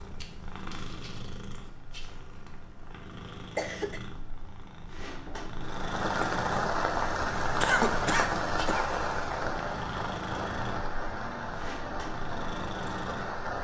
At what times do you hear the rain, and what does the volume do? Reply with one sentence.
The rain can be heard from 5.6 to 13.5 s, getting quieter.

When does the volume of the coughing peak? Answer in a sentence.
The volume of the coughing peaks at 8 seconds.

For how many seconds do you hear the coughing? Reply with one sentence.
You can hear the coughing for 2 seconds altogether.